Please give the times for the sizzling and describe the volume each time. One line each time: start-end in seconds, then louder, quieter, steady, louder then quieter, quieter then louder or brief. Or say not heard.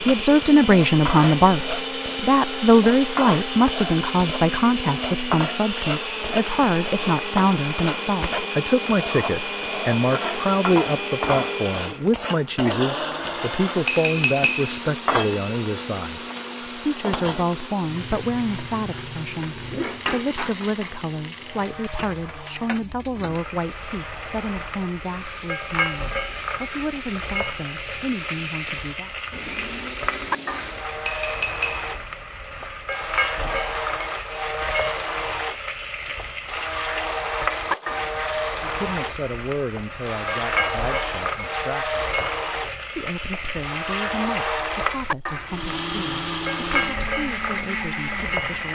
0.0-48.6 steady.